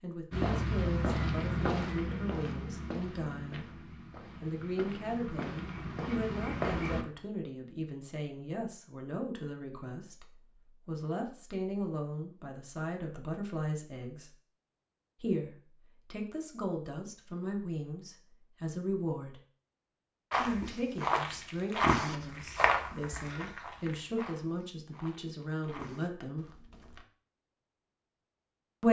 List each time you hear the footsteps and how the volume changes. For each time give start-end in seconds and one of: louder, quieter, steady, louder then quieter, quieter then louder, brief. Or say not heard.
0.3-7.0 quieter then louder
20.3-27.1 quieter.